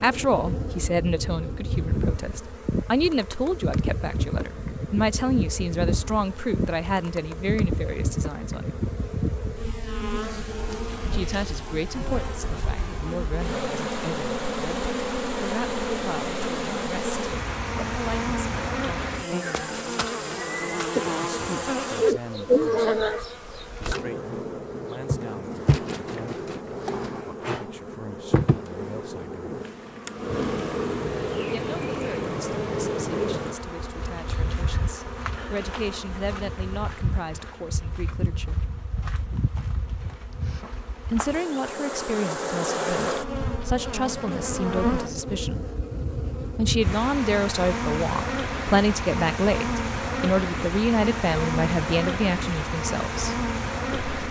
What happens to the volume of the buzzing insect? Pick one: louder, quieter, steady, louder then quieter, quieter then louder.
steady.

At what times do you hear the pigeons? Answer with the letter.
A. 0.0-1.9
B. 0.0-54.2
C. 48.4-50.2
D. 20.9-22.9
D.